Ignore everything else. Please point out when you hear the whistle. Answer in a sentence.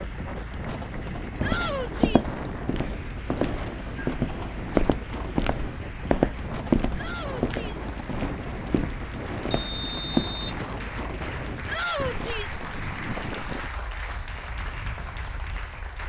The whistle can be heard from 9.5 to 10.6 s.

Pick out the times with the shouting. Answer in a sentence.
You can hear the shouting from 1.4 to 2.4 s, from 7.0 to 7.9 s and from 11.7 to 12.6 s.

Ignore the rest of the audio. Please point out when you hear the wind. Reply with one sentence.
You can hear the wind from 0.0 to 16.0 s.